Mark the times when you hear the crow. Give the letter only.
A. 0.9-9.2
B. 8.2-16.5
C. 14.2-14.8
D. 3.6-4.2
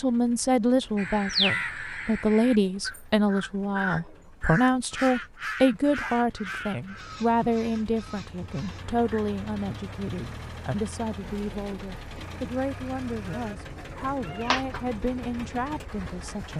A.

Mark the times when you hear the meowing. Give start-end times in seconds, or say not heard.
14.2-14.8.